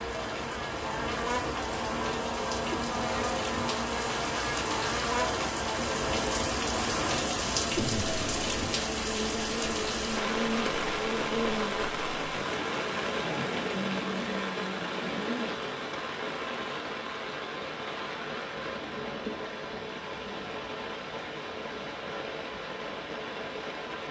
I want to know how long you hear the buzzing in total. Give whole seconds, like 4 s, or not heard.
16 s.